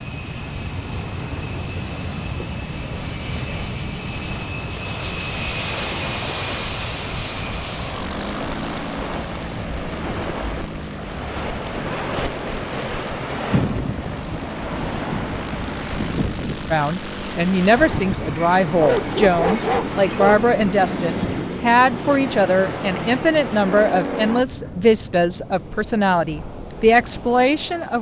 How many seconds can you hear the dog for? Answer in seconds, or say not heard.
2 s.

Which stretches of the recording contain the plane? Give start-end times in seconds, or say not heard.
0.0-24.4.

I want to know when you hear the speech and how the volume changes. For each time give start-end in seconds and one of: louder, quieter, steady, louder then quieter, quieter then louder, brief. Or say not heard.
16.7-27.9 steady.